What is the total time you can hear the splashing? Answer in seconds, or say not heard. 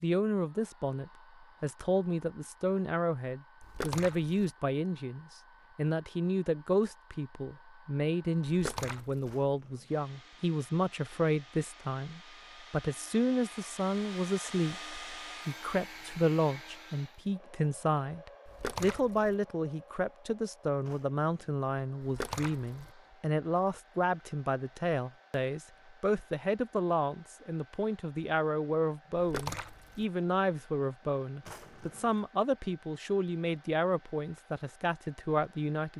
4 s.